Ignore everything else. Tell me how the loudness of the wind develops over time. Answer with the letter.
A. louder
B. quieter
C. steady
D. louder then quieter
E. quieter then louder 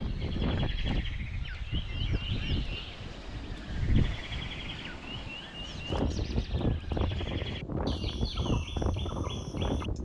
E.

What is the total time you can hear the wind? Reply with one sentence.
You can hear the wind for 10 seconds altogether.